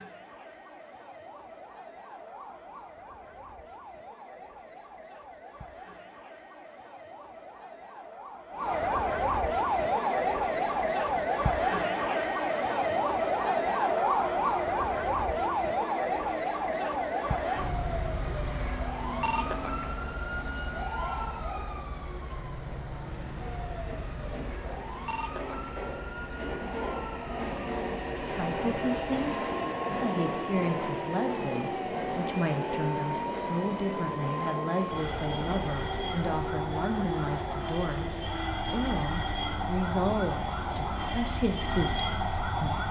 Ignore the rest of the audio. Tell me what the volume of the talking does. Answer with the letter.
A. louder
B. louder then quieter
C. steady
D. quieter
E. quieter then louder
C.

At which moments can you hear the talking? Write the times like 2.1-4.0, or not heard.
28.2-42.8.